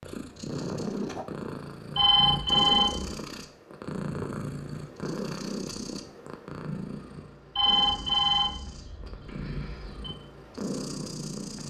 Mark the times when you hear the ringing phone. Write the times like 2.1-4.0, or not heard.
1.9-3.1, 7.5-10.1.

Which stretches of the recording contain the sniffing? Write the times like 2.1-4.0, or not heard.
not heard.